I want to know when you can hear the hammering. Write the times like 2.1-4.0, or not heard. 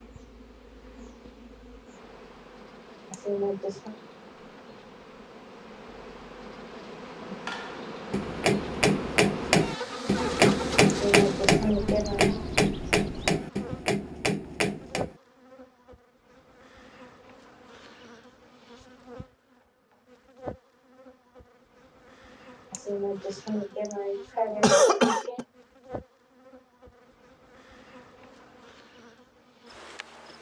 7.5-15.2.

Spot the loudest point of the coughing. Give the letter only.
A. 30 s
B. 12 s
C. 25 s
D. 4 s
C.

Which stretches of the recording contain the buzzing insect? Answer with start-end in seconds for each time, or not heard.
0.0-30.3.